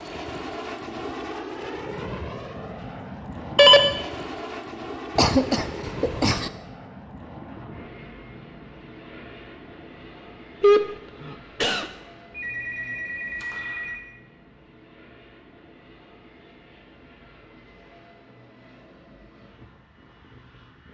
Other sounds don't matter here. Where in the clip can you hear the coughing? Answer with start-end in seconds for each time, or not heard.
5.2-6.5, 10.6-11.8.